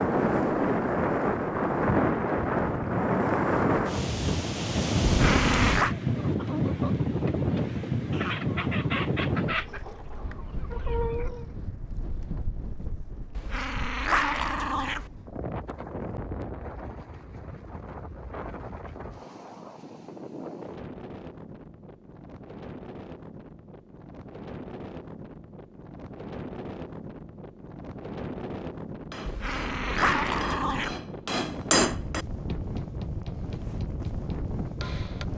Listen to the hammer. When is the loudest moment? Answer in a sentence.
The volume of the hammer peaks at 32 seconds.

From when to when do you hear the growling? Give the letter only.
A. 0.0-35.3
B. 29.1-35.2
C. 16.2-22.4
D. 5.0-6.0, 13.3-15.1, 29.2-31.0
D.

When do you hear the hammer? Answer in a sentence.
The hammer can be heard from 29.1 to 35.2 s.